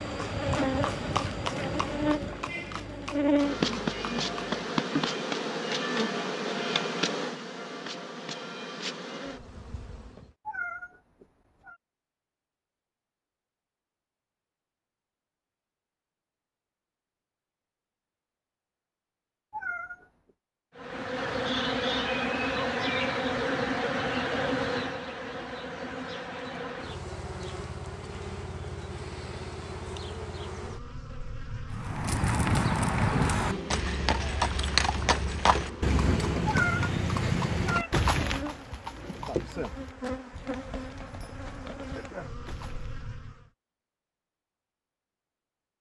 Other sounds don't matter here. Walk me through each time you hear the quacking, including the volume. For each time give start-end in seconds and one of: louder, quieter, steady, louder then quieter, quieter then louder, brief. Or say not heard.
not heard.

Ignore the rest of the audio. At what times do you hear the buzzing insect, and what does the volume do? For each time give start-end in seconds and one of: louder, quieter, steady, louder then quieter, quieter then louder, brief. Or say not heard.
0.0-10.3 quieter
20.8-43.5 quieter.